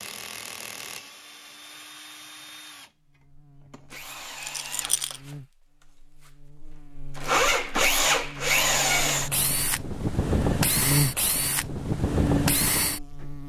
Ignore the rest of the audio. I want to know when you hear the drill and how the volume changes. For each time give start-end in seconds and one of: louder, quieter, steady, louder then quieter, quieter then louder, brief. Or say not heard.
0.0-13.2 louder.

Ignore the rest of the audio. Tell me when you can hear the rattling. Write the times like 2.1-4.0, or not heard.
4.3-5.2.